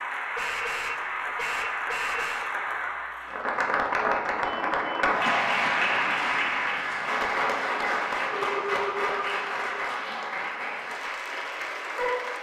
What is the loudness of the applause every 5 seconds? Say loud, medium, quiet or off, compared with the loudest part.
loud, loud, medium.